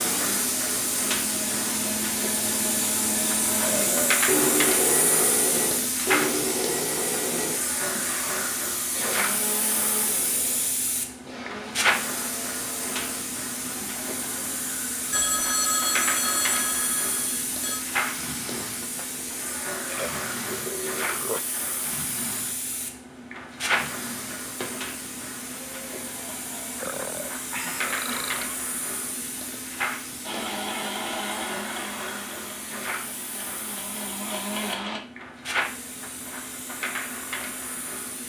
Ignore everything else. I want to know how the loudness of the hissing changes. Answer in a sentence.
The volume of the hissing goes down.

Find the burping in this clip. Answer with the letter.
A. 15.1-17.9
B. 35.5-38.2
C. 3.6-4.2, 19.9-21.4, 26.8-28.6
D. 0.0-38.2
C.